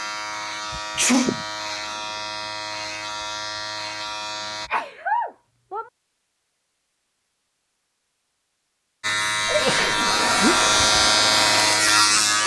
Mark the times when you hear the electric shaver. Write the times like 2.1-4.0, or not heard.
0.0-4.7, 9.0-12.4.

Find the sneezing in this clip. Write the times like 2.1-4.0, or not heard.
0.9-1.4, 4.7-5.9, 9.4-10.7.